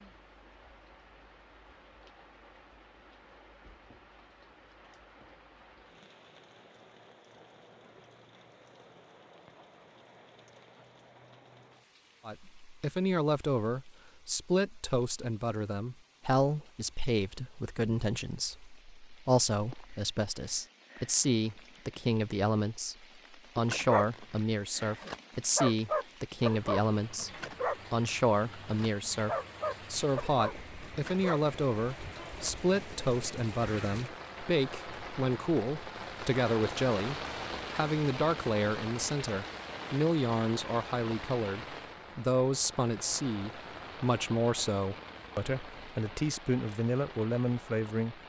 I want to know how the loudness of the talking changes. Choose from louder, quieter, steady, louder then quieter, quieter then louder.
steady.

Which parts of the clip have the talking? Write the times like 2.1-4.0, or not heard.
12.2-48.2.